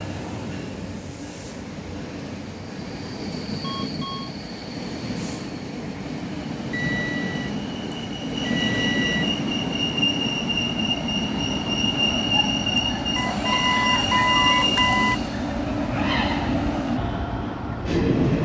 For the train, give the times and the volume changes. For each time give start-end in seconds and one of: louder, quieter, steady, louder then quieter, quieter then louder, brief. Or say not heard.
0.0-18.4 louder.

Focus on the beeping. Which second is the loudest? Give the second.
14 s.